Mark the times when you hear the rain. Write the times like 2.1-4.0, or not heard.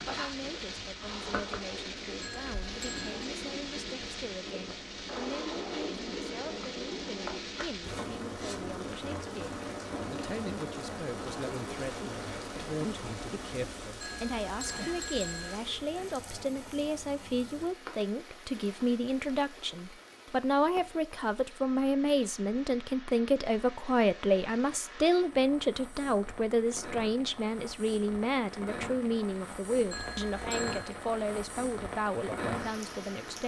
0.0-33.4.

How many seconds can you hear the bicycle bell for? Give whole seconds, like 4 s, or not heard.
4 s.